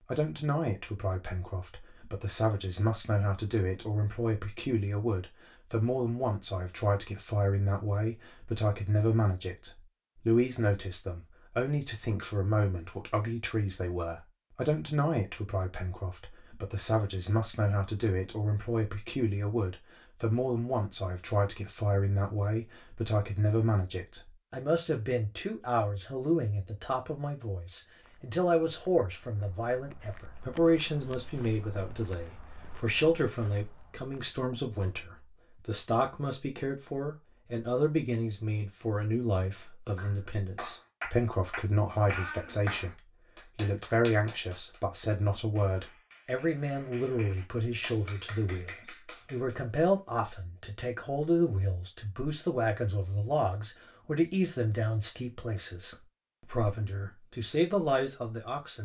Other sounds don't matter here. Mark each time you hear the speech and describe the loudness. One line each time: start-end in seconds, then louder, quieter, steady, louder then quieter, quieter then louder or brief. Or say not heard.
0.1-58.7 steady.